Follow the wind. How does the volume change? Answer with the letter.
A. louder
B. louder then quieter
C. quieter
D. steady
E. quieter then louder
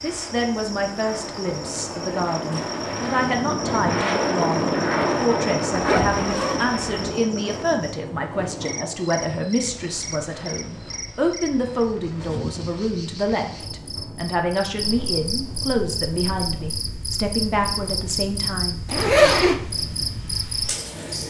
C.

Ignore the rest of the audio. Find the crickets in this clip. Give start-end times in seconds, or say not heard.
0.0-21.2.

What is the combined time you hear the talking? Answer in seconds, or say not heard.
19 s.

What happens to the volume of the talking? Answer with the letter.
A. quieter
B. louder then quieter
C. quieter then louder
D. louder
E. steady
E.